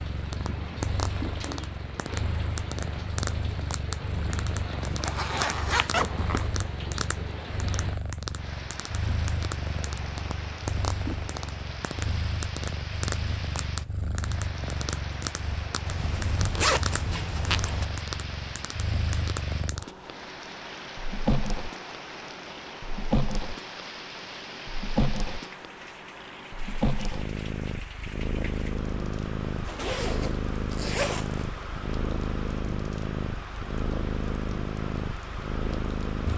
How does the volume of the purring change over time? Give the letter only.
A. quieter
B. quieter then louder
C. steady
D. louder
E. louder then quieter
C.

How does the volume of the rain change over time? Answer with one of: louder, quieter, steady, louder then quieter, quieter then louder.
steady.